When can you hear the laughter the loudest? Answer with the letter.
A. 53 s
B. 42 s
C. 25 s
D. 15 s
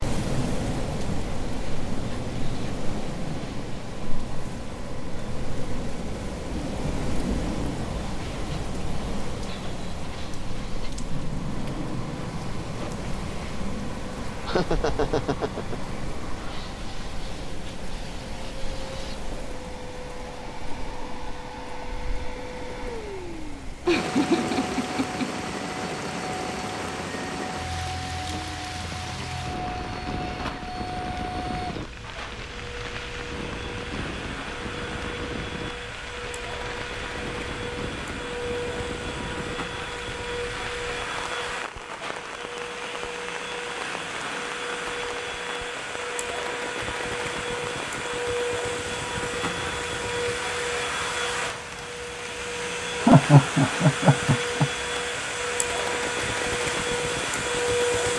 A.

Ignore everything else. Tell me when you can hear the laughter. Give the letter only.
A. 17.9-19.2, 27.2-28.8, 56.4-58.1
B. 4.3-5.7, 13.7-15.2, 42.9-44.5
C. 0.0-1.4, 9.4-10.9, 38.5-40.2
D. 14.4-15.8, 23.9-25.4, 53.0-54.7
D.